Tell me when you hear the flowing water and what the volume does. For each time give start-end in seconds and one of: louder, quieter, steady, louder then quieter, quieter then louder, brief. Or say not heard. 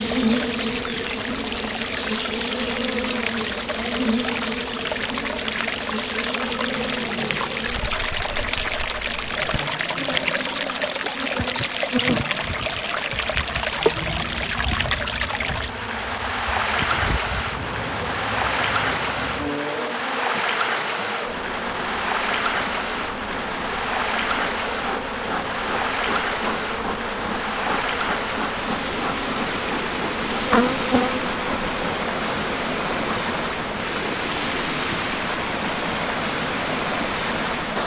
0.0-37.8 steady.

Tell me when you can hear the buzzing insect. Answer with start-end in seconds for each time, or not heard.
0.0-37.8.